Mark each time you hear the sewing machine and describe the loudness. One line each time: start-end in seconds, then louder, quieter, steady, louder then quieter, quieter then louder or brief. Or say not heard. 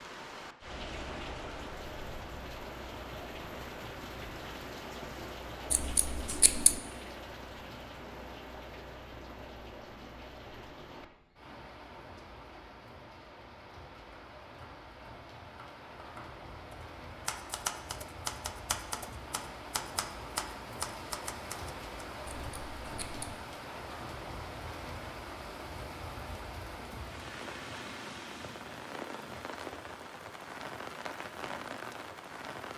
not heard.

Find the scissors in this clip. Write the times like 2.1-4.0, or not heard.
5.7-6.8, 22.2-23.4.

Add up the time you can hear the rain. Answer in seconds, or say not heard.
33 s.